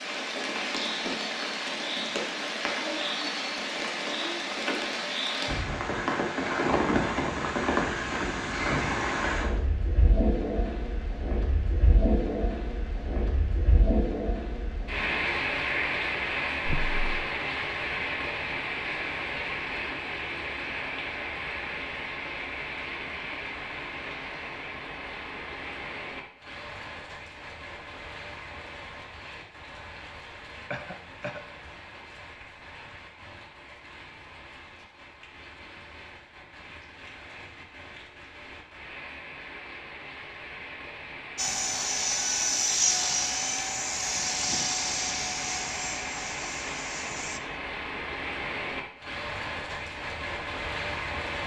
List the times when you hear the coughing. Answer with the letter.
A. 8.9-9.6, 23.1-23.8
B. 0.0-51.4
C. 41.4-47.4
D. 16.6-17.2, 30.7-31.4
D.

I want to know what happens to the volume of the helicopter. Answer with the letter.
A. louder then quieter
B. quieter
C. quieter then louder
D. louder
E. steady
B.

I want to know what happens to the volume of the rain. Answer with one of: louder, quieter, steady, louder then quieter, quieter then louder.
quieter then louder.